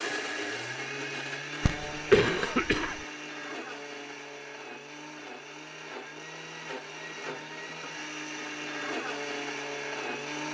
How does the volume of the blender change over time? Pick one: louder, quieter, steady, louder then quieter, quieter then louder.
quieter then louder.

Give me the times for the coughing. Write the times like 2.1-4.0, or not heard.
1.6-3.0.